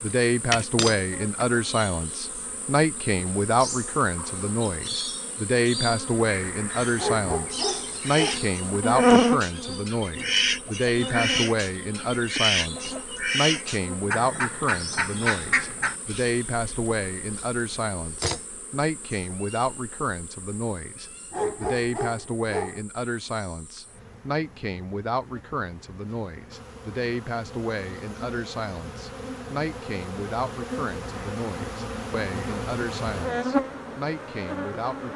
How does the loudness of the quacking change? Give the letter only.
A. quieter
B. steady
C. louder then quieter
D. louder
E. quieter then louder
D.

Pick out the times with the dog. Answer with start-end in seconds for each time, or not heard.
7.0-8.4, 21.3-22.8.